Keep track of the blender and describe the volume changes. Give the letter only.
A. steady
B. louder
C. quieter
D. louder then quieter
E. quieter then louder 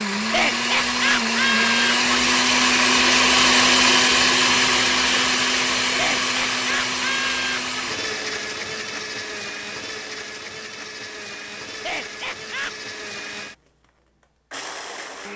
C.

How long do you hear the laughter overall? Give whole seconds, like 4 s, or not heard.
5 s.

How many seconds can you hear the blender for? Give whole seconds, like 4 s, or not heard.
15 s.